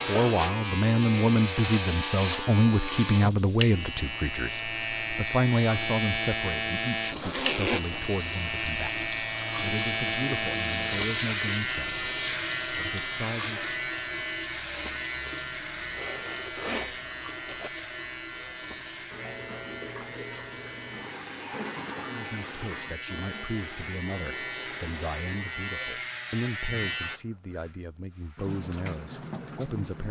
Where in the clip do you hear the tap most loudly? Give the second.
11 s.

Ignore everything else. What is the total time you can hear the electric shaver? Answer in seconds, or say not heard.
27 s.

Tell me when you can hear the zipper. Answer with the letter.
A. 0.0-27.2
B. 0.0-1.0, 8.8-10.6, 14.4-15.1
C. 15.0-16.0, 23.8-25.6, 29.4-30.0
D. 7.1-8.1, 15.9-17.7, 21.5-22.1
D.